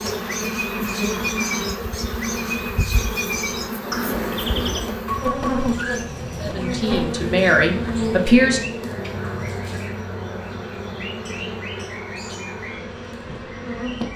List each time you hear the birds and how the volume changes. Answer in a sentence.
You can hear the birds from 0.0 to 14.1 s, getting quieter.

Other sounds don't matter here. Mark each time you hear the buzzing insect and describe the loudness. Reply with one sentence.
The buzzing insect can be heard from 0.0 to 14.1 s, getting quieter.